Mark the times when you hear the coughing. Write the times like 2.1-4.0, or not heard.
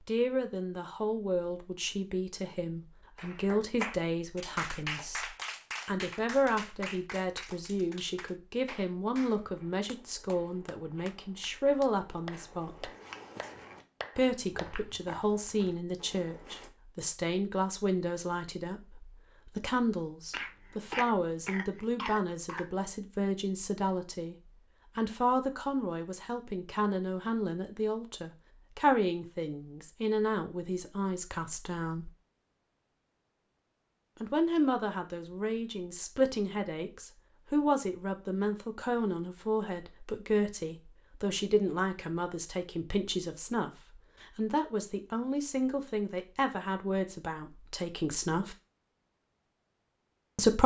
20.3-22.9.